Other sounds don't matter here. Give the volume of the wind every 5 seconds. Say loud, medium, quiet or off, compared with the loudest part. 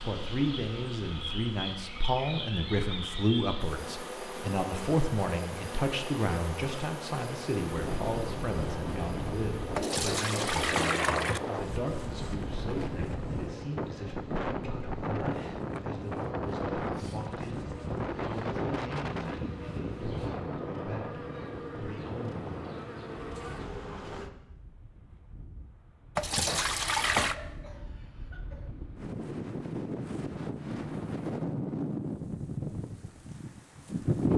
off, loud, loud, loud, medium, medium, loud.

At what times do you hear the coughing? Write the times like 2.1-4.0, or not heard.
27.3-28.6.